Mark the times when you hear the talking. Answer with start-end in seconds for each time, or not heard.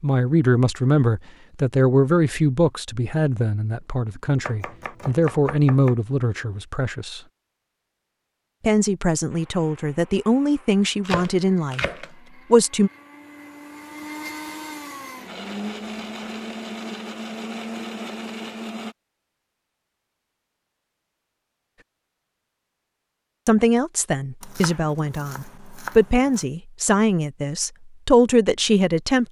0.0-7.2, 8.6-11.8, 12.5-12.9, 23.4-29.2.